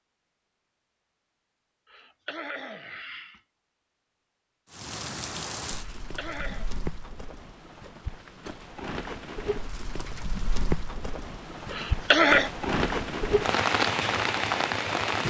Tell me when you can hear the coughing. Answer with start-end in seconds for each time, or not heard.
1.9-3.4, 6.0-6.7, 11.7-12.5.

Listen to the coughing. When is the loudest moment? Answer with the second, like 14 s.
12 s.